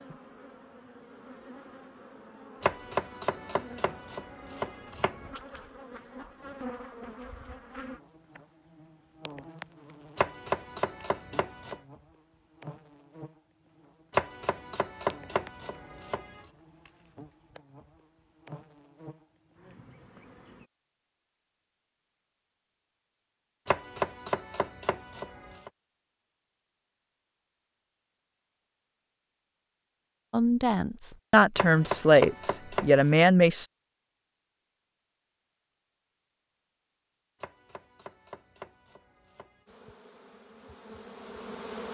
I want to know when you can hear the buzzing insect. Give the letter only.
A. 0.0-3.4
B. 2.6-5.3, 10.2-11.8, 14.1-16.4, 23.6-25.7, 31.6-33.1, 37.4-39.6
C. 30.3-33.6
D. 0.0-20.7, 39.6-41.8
D.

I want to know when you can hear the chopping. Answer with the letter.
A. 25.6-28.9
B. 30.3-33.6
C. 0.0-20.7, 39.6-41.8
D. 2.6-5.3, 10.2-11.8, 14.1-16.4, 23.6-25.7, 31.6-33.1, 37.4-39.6
D.